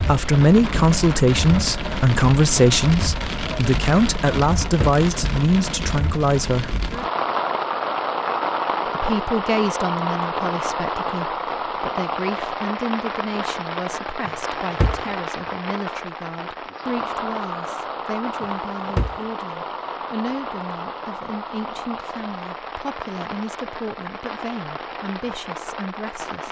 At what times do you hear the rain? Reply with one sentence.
The rain can be heard from 0.0 to 26.4 s.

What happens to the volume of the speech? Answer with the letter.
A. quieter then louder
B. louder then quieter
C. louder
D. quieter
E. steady
D.